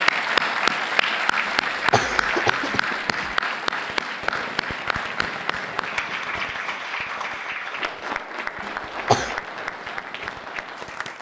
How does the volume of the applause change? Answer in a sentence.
The volume of the applause goes down.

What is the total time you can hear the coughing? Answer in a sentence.
The coughing can be heard for 3 seconds in total.